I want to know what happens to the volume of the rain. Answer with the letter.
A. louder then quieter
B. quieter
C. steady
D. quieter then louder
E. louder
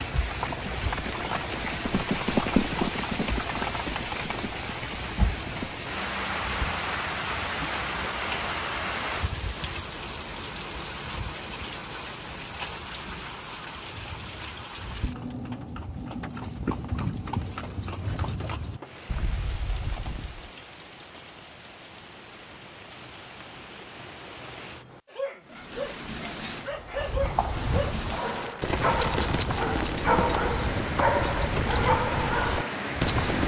D.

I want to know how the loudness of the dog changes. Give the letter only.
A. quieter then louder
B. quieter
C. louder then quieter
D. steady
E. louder
E.